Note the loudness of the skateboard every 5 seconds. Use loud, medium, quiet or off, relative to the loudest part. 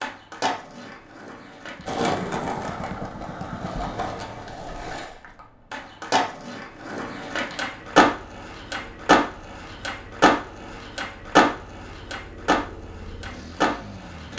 medium, loud, loud.